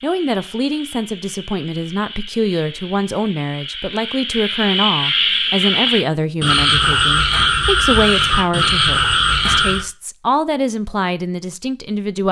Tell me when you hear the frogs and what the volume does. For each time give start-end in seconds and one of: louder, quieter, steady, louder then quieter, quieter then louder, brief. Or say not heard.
0.0-9.8 louder.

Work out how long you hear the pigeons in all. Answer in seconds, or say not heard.
not heard.